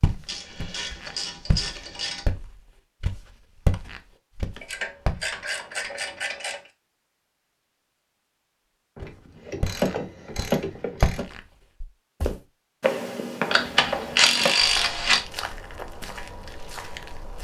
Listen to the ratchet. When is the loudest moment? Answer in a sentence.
The loudest moment of the ratchet is at 14 seconds.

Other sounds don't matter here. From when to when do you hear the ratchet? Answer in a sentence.
You can hear the ratchet from 0.2 to 2.2 s, from 4.6 to 6.7 s, from 8.9 to 11.2 s and from 13.5 to 15.2 s.